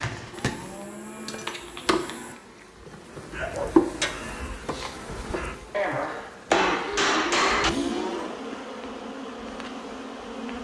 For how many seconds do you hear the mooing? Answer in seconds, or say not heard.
4 s.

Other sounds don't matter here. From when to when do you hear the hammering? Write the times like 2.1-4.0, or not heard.
0.4-1.5, 5.7-7.7.